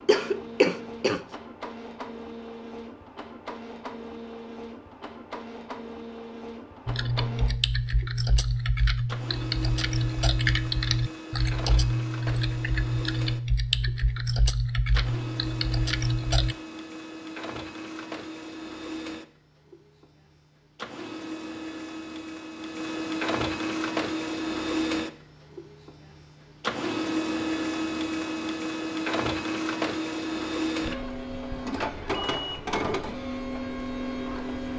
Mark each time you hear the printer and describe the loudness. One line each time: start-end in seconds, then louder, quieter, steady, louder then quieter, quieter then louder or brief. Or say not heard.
0.0-34.7 louder.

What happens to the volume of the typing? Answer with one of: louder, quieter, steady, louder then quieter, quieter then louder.
steady.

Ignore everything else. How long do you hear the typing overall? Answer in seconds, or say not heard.
10 s.